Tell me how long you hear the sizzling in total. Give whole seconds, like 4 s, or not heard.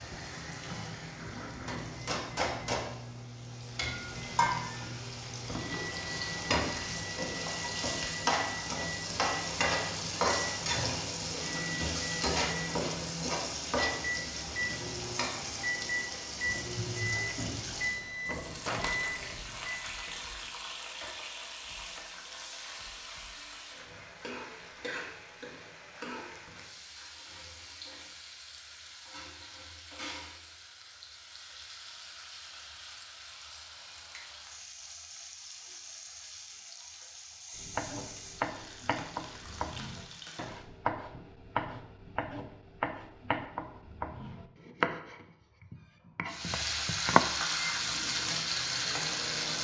44 s.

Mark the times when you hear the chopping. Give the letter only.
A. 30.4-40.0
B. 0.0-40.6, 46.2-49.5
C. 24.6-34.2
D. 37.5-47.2
D.